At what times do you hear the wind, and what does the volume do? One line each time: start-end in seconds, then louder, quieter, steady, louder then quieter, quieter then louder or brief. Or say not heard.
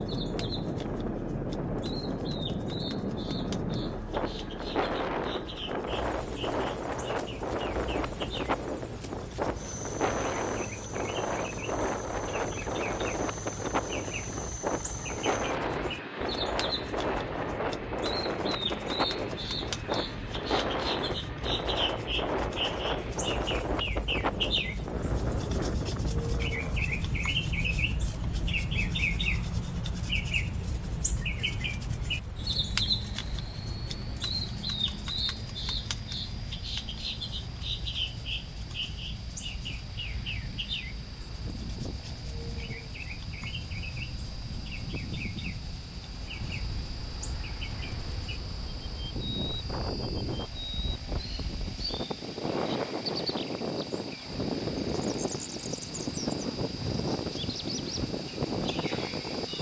0.0-59.5 quieter then louder.